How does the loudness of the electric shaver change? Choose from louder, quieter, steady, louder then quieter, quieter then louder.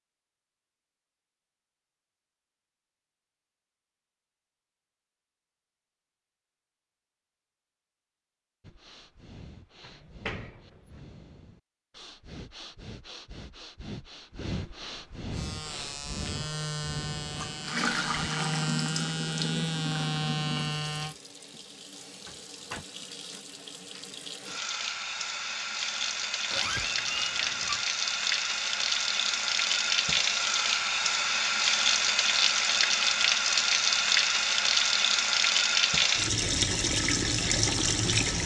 louder.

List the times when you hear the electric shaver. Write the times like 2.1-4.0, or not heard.
15.3-21.1.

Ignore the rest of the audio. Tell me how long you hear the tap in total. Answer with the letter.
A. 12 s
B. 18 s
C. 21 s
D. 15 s
C.